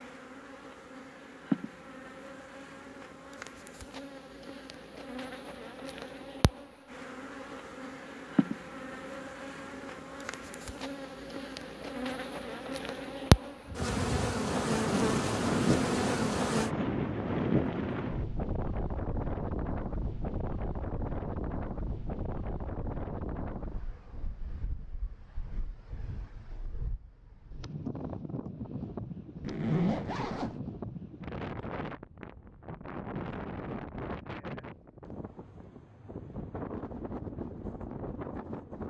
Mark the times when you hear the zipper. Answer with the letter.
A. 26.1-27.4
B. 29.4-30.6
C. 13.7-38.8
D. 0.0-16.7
B.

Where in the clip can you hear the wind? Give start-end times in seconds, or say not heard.
13.7-38.8.